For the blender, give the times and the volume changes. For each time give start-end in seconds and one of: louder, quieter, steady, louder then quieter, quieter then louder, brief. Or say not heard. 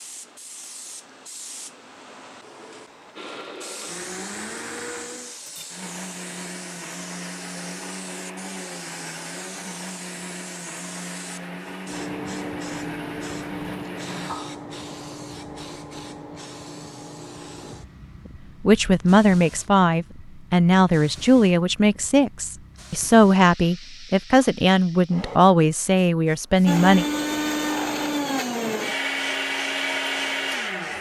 3.1-14.3 steady
26.6-30.9 steady.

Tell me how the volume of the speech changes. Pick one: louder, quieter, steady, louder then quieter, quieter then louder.
steady.